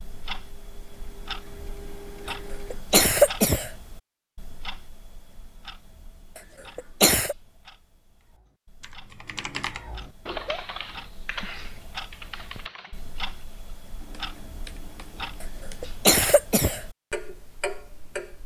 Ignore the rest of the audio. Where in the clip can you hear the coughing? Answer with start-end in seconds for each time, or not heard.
2.7-3.7, 6.8-7.3, 15.4-16.8.